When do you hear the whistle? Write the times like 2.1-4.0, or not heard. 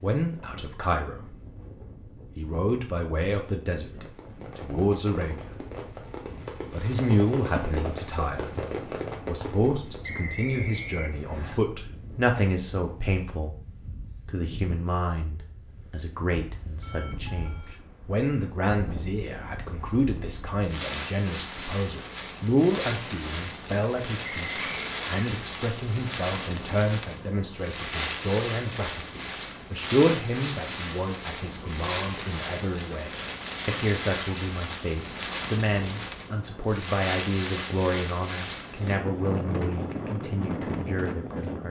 10.0-11.6, 24.4-24.9.